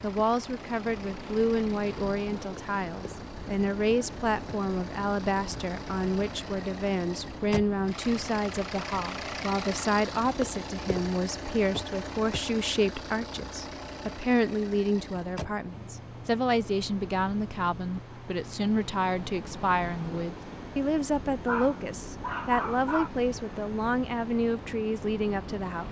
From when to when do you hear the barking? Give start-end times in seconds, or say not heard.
21.4-23.1.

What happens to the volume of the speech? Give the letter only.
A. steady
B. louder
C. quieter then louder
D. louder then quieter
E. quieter
A.